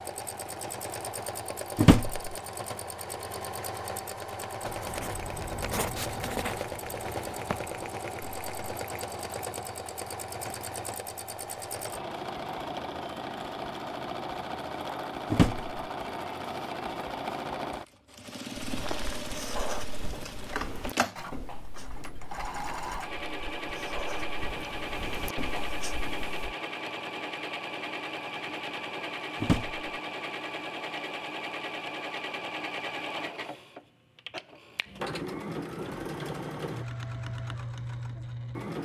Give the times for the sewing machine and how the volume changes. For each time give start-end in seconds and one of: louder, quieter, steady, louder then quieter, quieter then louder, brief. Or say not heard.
0.0-38.7 steady.